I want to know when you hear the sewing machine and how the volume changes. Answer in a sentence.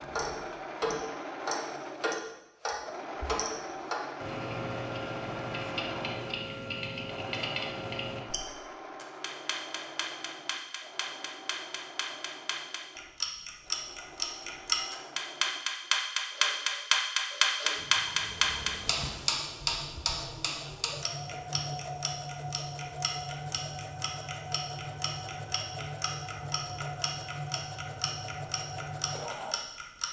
The sewing machine can be heard from 0.0 to 30.0 s, getting quieter then louder.